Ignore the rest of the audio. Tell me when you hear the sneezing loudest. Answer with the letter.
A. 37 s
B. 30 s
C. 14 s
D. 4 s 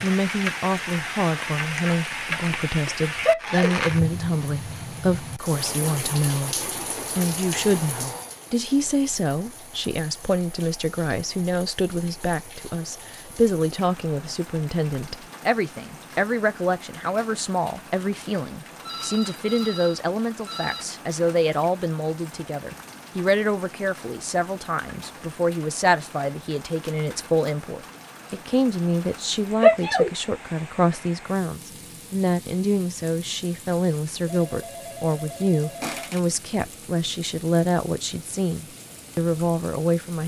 B.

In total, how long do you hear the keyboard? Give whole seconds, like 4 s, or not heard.
not heard.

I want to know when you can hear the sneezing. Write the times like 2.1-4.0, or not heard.
3.2-3.8, 29.6-30.1.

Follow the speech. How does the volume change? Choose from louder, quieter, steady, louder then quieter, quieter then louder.
steady.